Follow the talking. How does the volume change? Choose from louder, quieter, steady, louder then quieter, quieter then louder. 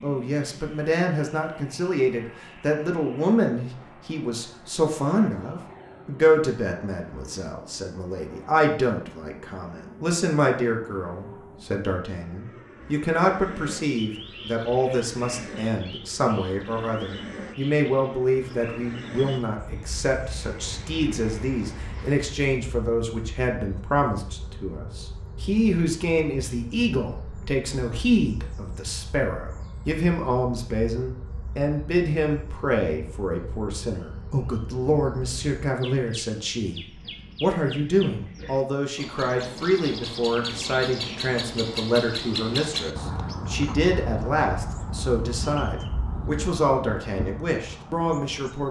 steady.